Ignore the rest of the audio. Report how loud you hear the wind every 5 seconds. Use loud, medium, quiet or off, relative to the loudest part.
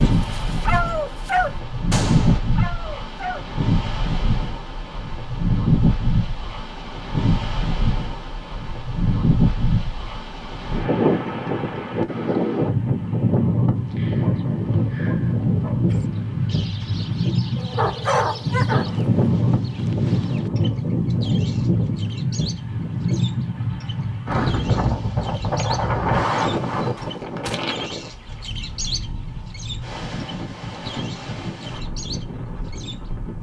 loud, loud, loud, loud, loud, loud, medium.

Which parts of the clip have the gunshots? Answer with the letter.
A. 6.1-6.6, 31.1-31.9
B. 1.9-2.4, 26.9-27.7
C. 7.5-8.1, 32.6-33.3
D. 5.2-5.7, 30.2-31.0
B.